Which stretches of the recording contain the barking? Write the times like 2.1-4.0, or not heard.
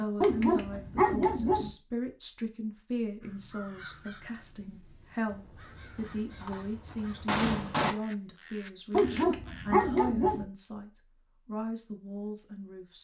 0.2-1.7, 8.9-10.4.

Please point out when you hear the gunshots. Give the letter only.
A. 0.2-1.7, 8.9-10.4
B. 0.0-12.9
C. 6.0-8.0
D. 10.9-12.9
C.